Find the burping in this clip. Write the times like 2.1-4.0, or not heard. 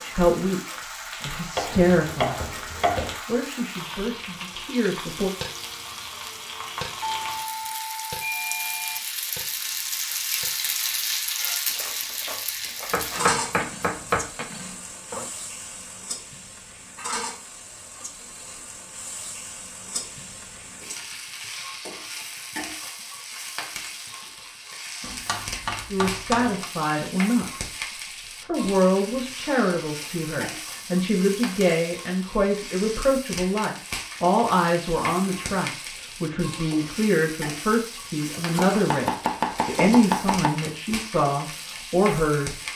not heard.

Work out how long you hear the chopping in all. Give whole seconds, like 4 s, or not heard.
7 s.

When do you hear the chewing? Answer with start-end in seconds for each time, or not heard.
not heard.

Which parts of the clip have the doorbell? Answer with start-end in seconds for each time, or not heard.
7.2-9.0.